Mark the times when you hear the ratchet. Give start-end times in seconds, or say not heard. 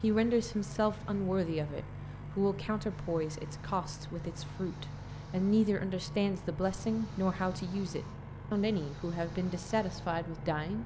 not heard.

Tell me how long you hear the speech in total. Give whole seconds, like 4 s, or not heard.
11 s.